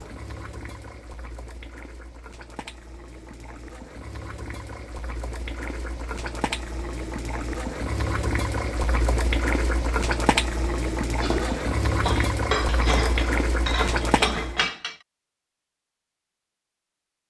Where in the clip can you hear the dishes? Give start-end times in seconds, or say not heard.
11.2-14.9.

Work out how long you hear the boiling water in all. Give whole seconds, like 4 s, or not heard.
15 s.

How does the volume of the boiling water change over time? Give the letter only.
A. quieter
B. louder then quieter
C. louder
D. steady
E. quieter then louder
C.